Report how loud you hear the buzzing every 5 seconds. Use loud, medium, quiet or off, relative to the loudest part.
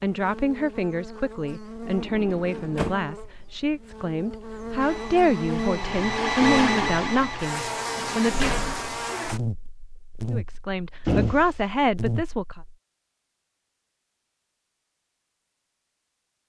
medium, loud, loud, off.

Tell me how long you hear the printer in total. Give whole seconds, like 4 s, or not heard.
3 s.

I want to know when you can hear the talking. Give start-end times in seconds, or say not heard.
0.0-8.6, 10.3-12.6.